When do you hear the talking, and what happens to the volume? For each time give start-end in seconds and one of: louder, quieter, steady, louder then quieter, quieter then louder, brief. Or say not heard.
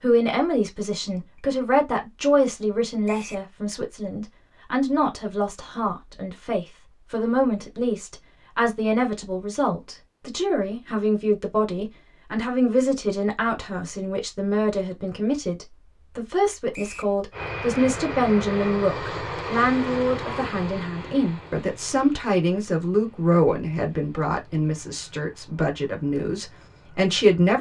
0.0-27.5 steady.